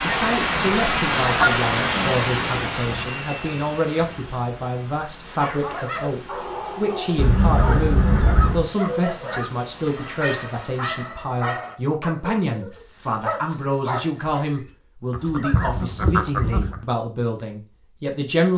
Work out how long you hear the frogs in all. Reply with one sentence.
The frogs can't be heard in this clip.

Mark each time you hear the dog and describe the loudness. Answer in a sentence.
The dog can be heard from 5.3 to 14.1 s, at a steady volume.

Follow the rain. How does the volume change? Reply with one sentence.
The volume of the rain goes down.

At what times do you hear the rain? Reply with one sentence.
The rain can be heard from 0.0 to 11.1 s.